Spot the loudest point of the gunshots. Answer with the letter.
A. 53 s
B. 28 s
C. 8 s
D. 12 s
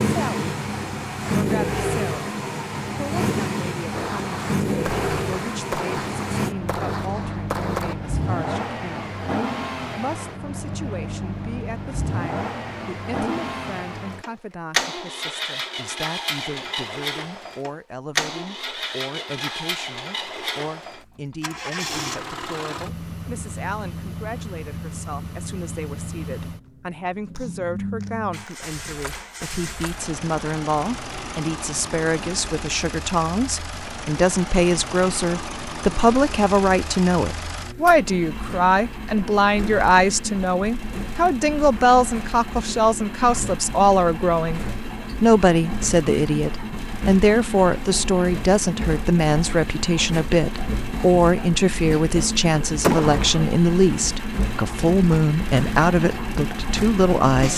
A.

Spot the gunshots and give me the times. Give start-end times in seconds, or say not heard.
3.9-8.0, 27.4-29.3, 52.8-53.4.